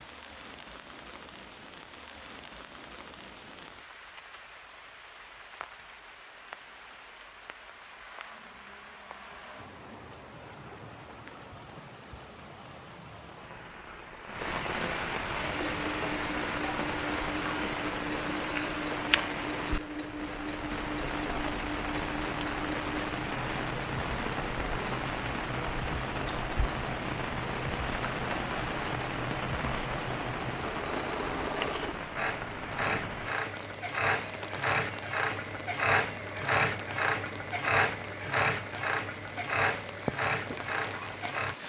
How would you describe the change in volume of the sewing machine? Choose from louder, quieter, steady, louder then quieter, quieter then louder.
louder.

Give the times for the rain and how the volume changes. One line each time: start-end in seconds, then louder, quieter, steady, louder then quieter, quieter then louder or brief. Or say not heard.
0.0-41.6 louder then quieter.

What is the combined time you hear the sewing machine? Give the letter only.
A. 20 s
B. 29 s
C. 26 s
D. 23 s
C.